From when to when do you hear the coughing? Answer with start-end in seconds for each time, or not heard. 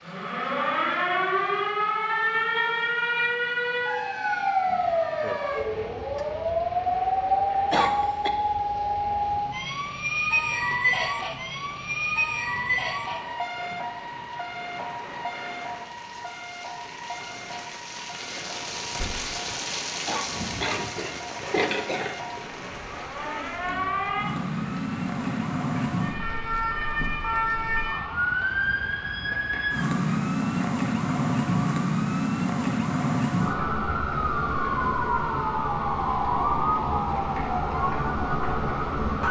7.7-8.3, 20.1-22.4.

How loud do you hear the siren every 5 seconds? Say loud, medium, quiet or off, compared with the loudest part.
loud, loud, loud, quiet, medium, loud, loud, loud.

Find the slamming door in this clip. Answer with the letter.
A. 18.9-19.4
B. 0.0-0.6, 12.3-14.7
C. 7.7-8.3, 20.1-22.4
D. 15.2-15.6
A.